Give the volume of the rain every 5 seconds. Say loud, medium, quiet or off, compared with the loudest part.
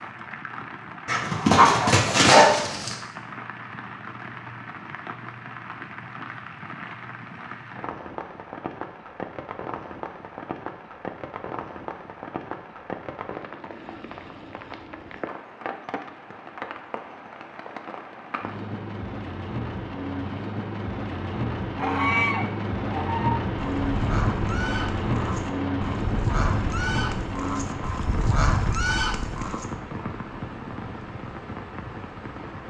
medium, medium, medium, medium, loud, loud, medium.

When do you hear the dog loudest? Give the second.
2 s.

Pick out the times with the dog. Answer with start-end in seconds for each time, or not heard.
1.1-3.0.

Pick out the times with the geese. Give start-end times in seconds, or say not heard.
21.8-29.6.